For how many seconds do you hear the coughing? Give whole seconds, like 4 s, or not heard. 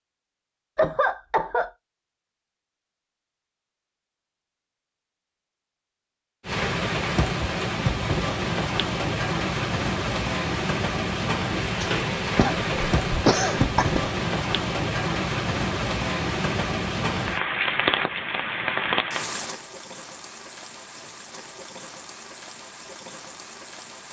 3 s.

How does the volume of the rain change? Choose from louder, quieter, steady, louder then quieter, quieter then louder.
quieter.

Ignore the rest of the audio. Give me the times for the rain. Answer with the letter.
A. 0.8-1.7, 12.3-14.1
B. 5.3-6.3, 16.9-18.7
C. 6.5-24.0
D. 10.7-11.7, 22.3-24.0
C.